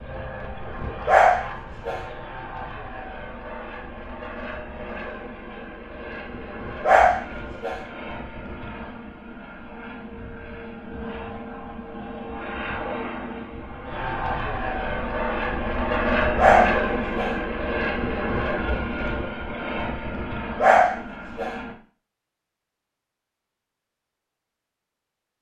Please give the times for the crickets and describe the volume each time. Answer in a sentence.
You can't hear the crickets here.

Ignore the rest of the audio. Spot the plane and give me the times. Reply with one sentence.
The plane can be heard from 0.0 to 21.8 s.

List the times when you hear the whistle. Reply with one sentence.
You can't hear the whistle here.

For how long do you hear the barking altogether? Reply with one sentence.
The barking can be heard for 4 seconds in total.